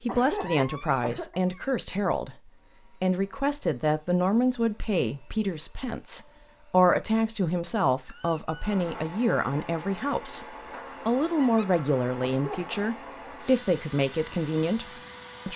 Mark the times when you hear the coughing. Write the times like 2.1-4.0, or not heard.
0.1-1.4, 12.2-12.8.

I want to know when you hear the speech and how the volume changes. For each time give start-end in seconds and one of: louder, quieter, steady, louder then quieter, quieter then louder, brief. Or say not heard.
0.0-15.5 steady.